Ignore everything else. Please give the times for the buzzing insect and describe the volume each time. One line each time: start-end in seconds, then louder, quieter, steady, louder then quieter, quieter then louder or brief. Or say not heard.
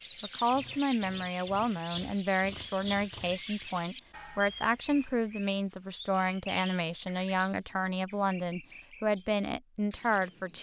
not heard.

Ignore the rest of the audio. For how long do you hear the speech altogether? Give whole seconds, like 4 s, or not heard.
10 s.